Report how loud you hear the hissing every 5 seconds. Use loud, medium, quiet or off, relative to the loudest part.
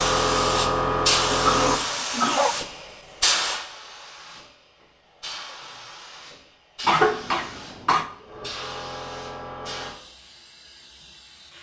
loud, quiet, quiet.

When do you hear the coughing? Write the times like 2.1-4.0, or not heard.
1.3-2.5, 6.8-8.1.